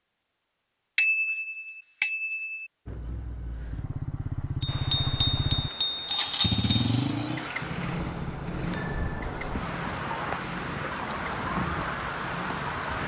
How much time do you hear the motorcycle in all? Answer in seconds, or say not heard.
10 s.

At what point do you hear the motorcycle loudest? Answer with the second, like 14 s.
7 s.